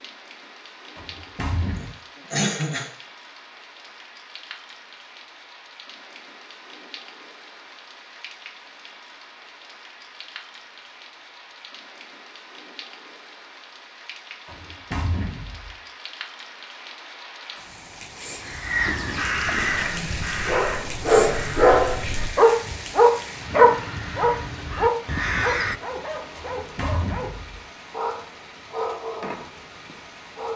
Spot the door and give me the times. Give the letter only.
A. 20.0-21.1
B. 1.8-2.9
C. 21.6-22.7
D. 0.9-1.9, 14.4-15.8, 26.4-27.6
D.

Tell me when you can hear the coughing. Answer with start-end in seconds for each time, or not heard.
1.8-2.9.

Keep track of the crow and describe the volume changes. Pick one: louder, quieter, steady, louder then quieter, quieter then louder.
quieter then louder.